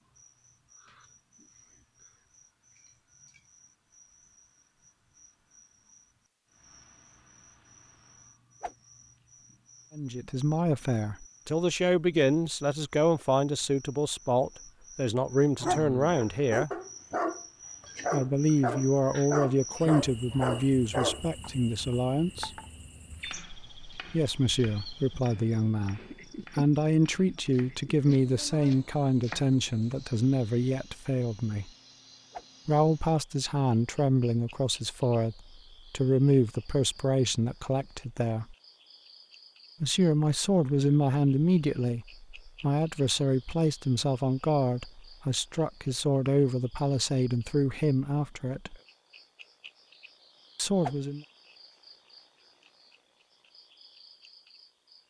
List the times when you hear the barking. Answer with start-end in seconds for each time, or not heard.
15.6-21.2.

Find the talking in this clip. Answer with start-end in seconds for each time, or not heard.
9.9-16.7, 18.1-22.5, 24.1-31.7, 32.6-38.5, 39.8-48.8, 50.5-51.2.